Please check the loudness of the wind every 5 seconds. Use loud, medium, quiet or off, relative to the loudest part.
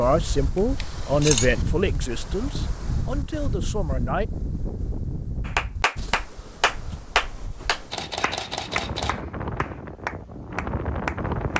loud, medium, loud.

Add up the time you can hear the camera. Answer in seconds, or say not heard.
2 s.